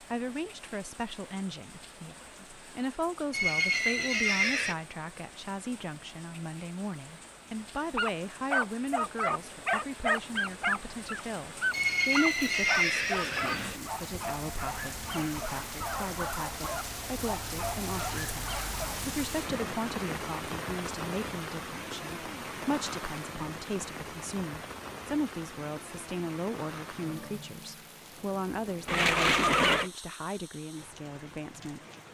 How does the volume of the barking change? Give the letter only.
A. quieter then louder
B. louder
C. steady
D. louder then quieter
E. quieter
E.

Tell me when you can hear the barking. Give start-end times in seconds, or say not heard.
8.0-19.1.